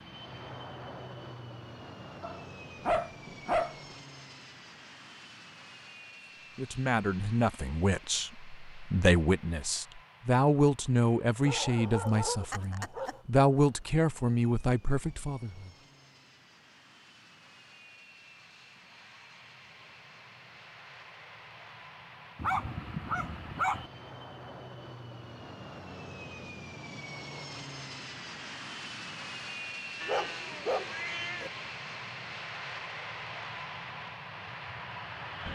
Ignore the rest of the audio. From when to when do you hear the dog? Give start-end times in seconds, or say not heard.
2.2-4.0, 11.4-13.2, 22.4-23.9, 30.0-31.5.